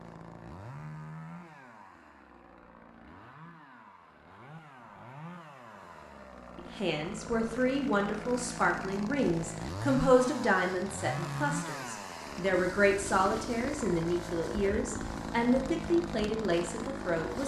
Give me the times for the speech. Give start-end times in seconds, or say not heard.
6.5-17.4.